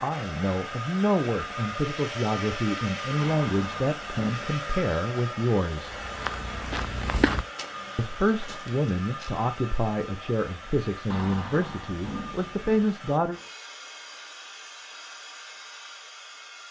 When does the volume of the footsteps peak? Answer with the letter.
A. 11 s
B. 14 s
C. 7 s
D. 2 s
C.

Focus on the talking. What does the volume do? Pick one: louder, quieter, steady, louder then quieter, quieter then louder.
steady.